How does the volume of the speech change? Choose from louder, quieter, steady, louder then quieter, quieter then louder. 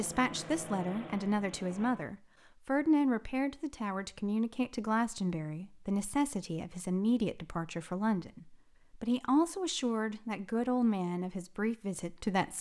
steady.